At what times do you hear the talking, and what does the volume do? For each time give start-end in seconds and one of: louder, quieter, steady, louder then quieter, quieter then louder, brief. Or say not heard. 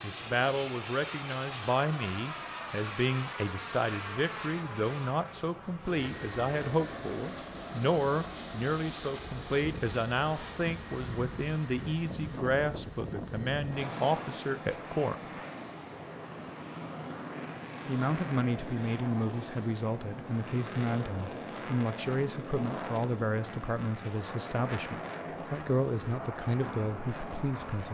0.0-15.2 steady
17.9-27.8 steady.